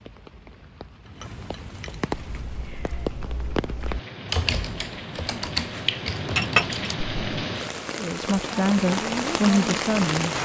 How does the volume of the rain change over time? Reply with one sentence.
The loudness of the rain goes up.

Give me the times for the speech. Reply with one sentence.
You can hear the speech from 8.0 to 10.3 s.